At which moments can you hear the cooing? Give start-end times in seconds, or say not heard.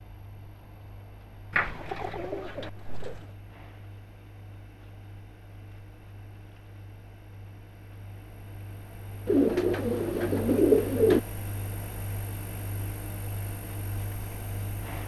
1.5-3.2, 9.2-11.2.